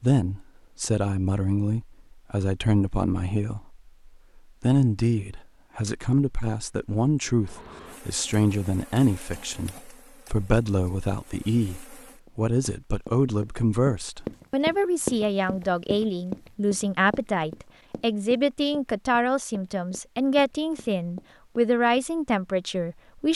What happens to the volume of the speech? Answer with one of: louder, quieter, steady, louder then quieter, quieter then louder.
steady.